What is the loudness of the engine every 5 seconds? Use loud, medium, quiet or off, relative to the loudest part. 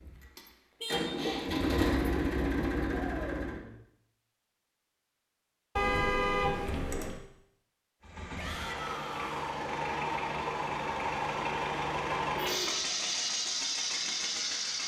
loud, medium, loud.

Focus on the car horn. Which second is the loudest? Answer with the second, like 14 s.
6 s.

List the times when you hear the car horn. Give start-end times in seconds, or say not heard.
0.8-1.2, 5.8-7.2, 12.3-12.8.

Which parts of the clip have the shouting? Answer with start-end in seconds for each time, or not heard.
3.0-3.5, 8.3-9.6.